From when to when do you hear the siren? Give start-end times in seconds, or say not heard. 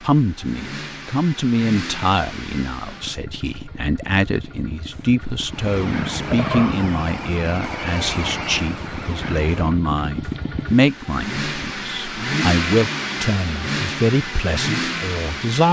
5.5-9.8.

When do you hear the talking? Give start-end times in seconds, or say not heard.
0.0-15.6.